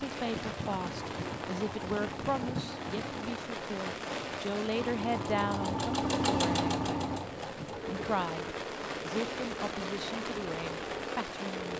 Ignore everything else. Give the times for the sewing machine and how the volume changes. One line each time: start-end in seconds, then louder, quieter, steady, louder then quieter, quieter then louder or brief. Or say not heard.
0.1-11.7 louder then quieter.